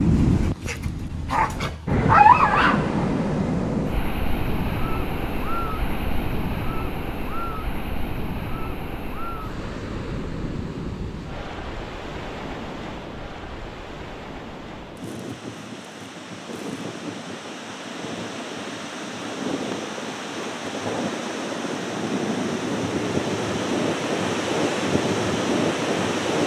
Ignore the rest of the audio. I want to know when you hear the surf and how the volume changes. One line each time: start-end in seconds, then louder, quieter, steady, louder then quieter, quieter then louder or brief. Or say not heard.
0.0-26.4 quieter then louder.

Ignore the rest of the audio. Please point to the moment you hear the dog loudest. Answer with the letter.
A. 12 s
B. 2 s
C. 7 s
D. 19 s
B.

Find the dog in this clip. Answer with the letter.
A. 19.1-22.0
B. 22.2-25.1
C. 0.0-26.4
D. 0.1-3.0
D.